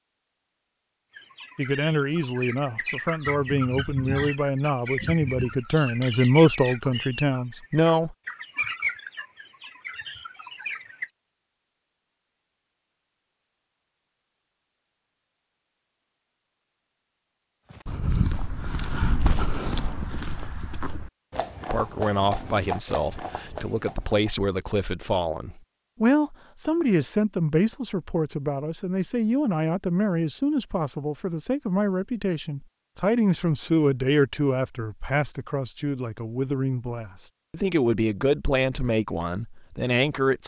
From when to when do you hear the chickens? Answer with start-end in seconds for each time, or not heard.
1.1-11.1.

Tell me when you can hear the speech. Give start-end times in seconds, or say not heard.
1.6-8.2, 21.7-40.4.